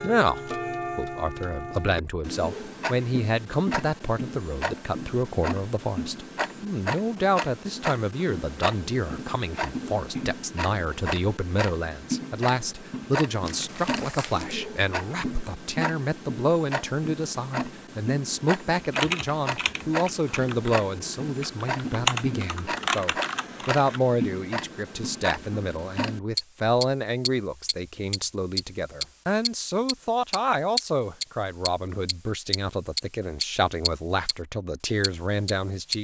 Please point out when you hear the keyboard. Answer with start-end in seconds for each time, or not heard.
18.8-20.8, 21.4-24.0.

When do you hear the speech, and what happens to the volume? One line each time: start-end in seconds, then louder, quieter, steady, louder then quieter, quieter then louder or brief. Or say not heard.
0.0-36.0 steady.